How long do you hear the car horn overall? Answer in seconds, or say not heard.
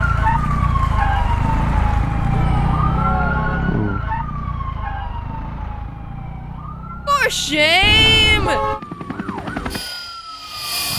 2 s.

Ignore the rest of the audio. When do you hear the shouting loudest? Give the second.
8 s.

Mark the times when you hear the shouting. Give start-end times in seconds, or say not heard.
2.3-3.1, 7.0-8.6.